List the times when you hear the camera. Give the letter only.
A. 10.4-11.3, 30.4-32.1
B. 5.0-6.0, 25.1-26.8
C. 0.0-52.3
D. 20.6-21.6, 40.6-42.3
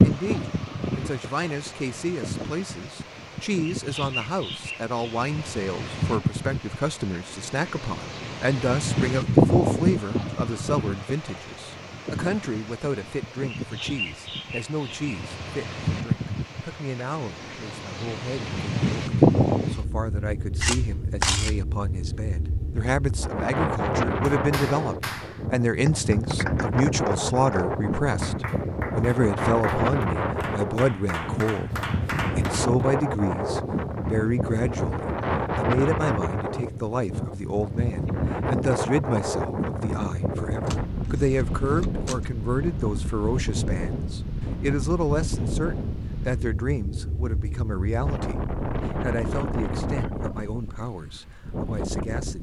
D.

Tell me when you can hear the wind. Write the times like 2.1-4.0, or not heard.
0.0-52.3.